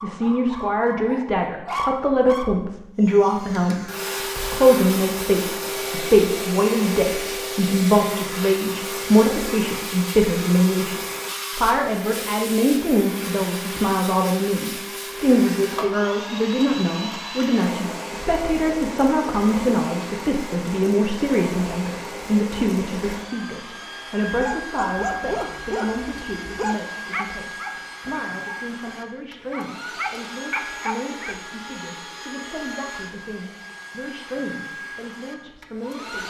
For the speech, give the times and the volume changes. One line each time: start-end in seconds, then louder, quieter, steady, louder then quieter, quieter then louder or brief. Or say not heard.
0.0-36.2 quieter.